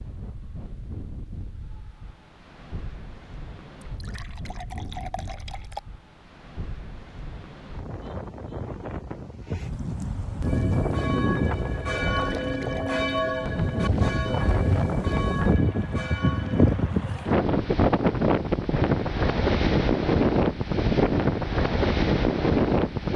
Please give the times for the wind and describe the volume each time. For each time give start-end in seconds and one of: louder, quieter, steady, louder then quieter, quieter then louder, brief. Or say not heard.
0.0-23.1 louder.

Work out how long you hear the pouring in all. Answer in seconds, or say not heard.
3 s.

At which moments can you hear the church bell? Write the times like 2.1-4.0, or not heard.
10.4-16.9.